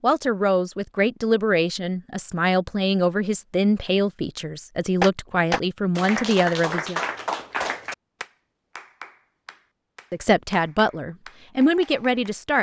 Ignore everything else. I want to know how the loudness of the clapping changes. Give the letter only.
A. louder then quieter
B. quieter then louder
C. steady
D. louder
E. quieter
E.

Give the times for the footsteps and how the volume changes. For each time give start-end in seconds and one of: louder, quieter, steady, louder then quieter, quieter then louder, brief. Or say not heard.
not heard.